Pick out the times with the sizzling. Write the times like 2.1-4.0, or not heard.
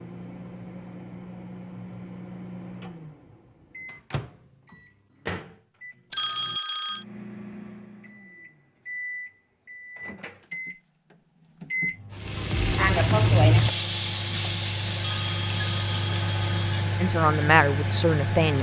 12.2-18.4.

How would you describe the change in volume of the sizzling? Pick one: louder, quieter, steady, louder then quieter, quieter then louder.
quieter.